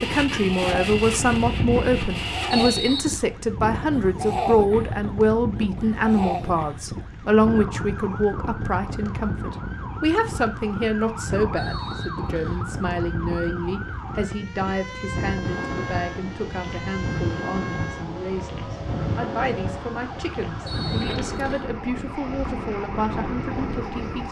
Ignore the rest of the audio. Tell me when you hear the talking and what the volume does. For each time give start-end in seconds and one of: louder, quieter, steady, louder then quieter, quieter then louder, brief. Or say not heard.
0.0-24.2 quieter.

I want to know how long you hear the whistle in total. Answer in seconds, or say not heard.
3 s.